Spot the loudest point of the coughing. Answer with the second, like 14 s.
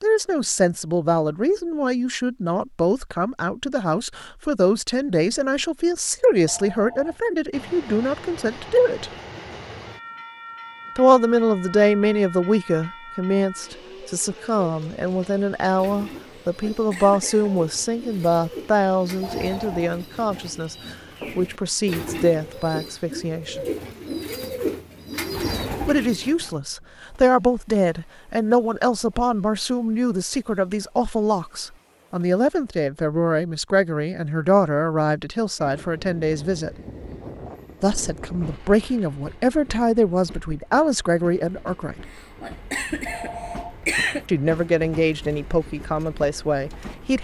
44 s.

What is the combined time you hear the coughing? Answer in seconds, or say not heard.
3 s.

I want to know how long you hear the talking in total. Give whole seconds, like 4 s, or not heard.
40 s.